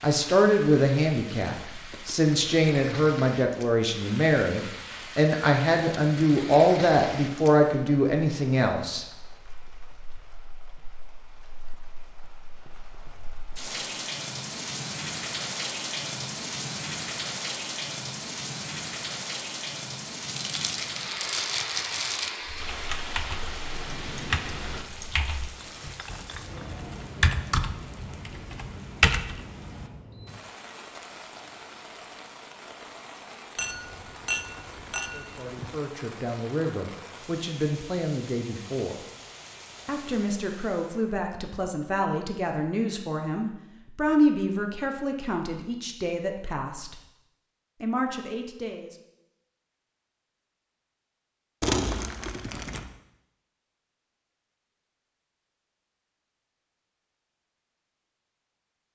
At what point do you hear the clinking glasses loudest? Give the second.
34 s.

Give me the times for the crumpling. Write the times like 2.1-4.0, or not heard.
20.2-22.4, 51.6-52.9.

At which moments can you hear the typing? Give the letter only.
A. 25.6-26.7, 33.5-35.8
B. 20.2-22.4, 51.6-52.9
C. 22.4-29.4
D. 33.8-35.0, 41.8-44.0
C.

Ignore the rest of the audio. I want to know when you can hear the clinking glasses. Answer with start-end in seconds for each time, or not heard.
25.6-26.7, 33.5-35.8.